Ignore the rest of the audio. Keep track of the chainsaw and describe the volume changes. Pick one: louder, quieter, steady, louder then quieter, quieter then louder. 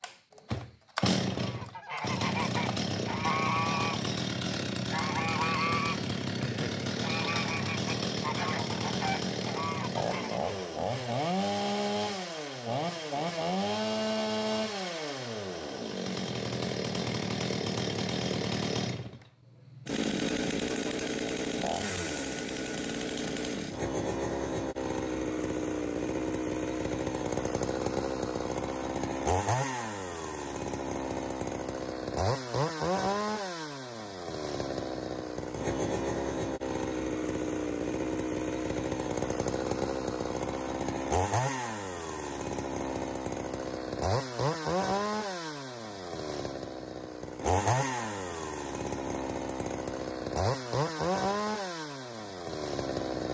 steady.